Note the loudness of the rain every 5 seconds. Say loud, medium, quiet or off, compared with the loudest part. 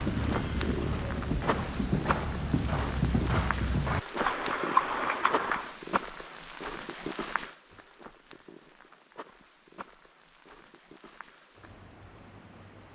loud, loud, quiet.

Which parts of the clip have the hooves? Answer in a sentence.
You can hear the hooves from 0.0 to 5.8 s.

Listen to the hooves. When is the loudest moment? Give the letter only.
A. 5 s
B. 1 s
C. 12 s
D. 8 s
A.